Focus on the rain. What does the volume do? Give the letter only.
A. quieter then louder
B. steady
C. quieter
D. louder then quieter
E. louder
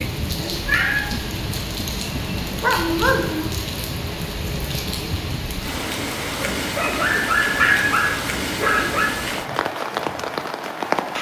B.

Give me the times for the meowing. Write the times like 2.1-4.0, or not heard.
0.7-1.1, 7.5-8.0.